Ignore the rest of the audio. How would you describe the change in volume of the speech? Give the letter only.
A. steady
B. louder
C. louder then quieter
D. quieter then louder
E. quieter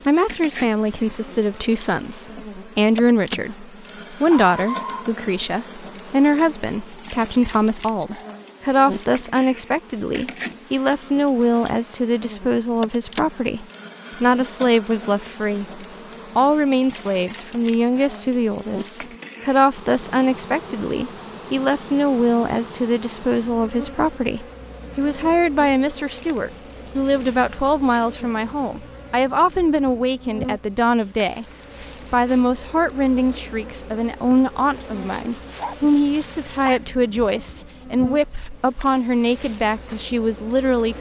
A.